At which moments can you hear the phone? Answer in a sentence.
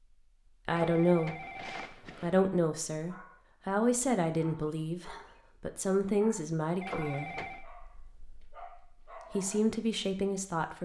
The phone can be heard from 0.7 to 2.4 s and from 6.8 to 7.7 s.